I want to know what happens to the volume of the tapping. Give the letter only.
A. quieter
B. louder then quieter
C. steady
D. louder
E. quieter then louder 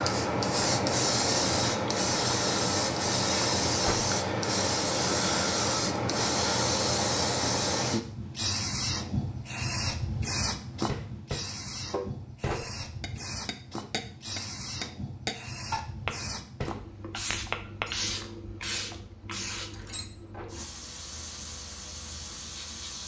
E.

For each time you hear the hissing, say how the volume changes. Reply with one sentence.
You can hear the hissing from 0.0 to 23.0 s, getting quieter.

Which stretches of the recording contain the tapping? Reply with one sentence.
You can hear the tapping from 10.8 to 17.9 s.